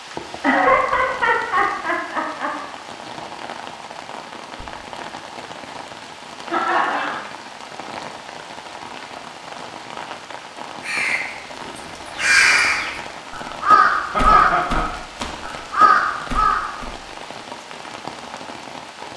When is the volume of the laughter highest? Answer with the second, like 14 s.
1 s.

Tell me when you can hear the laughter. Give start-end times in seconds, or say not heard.
0.4-2.5, 6.5-7.2, 14.1-14.9.